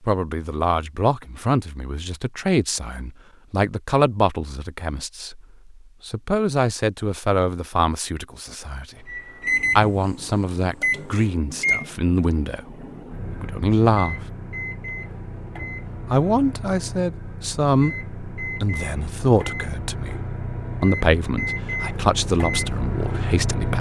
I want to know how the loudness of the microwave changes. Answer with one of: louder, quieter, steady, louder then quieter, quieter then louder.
quieter then louder.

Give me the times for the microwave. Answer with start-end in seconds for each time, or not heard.
9.1-23.7.